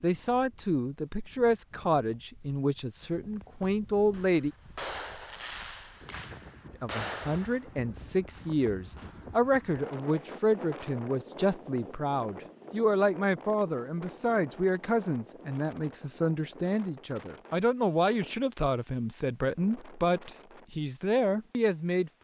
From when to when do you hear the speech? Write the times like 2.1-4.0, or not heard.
0.0-4.5, 6.8-22.1.